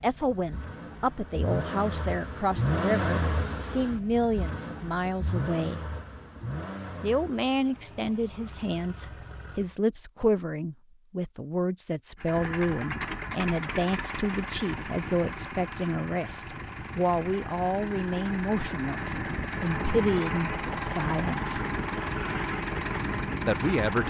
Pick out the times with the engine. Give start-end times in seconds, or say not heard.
0.0-9.8, 12.2-24.0.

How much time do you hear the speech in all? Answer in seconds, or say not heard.
21 s.